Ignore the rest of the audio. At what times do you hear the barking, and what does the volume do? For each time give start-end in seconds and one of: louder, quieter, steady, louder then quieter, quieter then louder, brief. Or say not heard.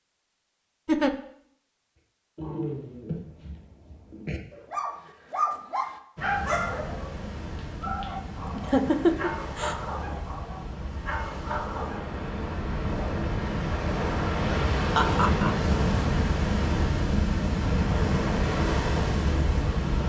2.4-12.1 louder then quieter.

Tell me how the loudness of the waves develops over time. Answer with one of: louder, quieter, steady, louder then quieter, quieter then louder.
louder.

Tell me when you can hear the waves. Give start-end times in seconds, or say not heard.
6.2-20.0.